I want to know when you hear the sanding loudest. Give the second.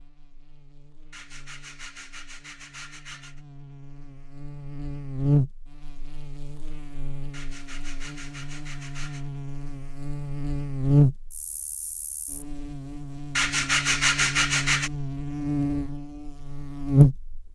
14 s.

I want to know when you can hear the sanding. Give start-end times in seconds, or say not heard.
1.1-3.4, 7.3-9.3, 13.3-14.9.